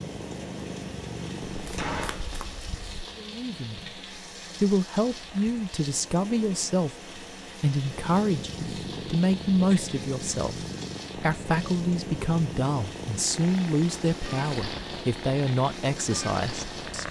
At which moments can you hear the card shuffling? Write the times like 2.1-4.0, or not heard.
1.4-3.1.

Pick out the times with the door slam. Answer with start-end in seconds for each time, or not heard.
1.6-2.3.